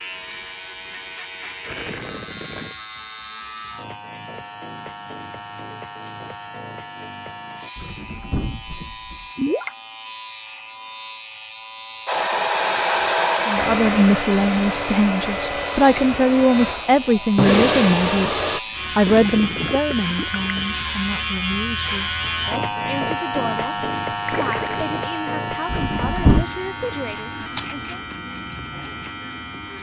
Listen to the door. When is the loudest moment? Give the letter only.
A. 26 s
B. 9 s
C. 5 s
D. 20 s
A.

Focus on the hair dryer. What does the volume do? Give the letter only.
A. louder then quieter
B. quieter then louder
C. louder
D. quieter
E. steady
B.